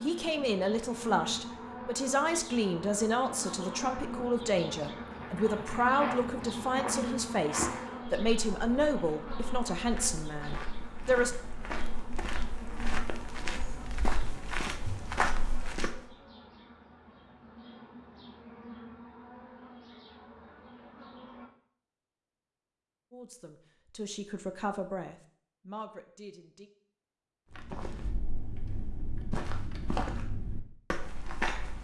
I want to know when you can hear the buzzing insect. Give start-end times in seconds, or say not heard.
0.0-21.5.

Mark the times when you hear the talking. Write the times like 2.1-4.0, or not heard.
0.0-11.3, 23.1-26.7.